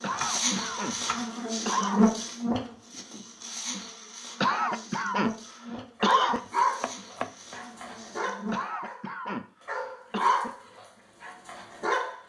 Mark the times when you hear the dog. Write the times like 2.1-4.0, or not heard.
6.0-12.2.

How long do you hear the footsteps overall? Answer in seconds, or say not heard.
not heard.